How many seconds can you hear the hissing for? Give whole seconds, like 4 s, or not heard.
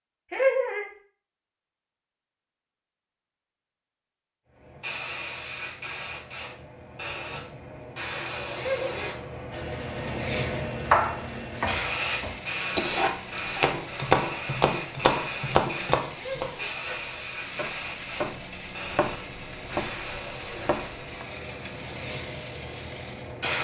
19 s.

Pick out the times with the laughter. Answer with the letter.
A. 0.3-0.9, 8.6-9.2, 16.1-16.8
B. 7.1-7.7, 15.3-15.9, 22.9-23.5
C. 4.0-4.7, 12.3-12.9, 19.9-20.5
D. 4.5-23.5
A.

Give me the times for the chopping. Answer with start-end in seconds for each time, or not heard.
10.9-21.2.